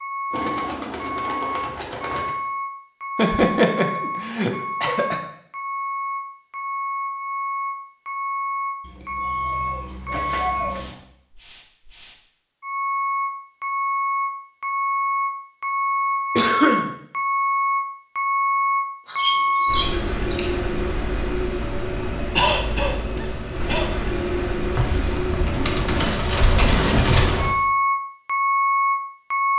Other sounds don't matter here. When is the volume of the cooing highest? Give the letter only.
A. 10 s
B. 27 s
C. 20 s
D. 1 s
B.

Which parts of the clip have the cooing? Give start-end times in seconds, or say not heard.
0.3-2.4, 8.8-11.0, 19.1-20.6, 24.8-27.6.